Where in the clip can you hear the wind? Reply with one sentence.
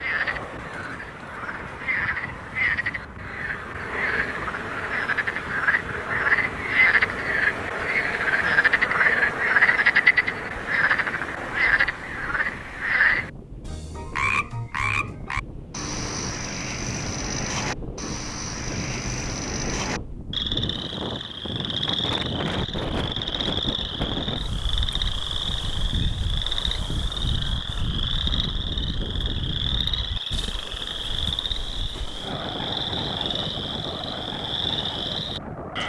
The wind can be heard from 0.0 to 35.8 s.